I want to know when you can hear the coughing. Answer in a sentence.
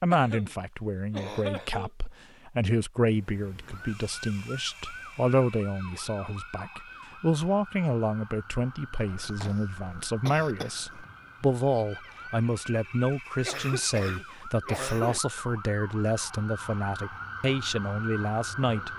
The coughing can be heard from 0.1 to 2.1 s, from 9.1 to 11.1 s and from 13.4 to 15.2 s.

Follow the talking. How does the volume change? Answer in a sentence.
The volume of the talking stays about the same.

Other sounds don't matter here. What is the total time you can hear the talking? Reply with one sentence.
You can hear the talking for 19 seconds altogether.